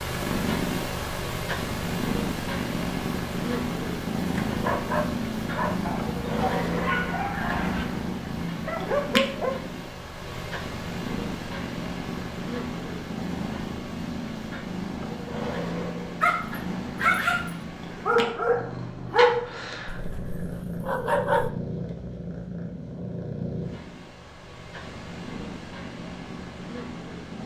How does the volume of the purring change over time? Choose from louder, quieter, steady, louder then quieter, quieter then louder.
quieter.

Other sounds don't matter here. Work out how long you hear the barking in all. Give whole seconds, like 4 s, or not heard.
10 s.